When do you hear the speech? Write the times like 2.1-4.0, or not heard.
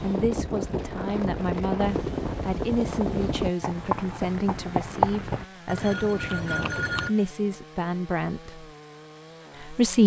0.0-8.7, 9.6-10.0.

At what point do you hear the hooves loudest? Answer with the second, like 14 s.
5 s.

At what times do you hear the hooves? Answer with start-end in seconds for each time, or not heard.
0.0-7.1.